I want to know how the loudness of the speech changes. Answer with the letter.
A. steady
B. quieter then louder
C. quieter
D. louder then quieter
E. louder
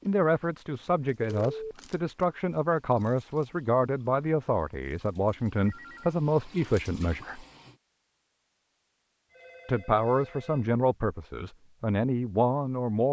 A.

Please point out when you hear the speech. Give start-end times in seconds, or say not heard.
0.1-7.5, 9.7-13.0.